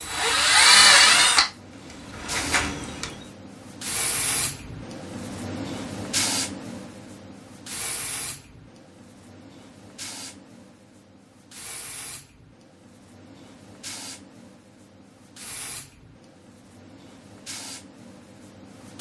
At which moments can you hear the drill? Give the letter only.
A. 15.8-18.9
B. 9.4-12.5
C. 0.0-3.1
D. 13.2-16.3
C.